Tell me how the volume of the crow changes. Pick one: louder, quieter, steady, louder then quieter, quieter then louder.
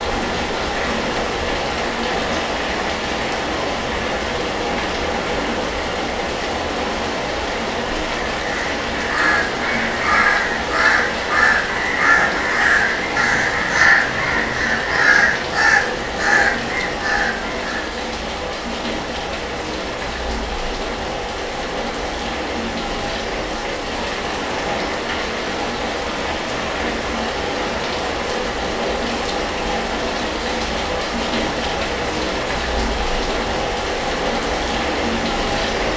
steady.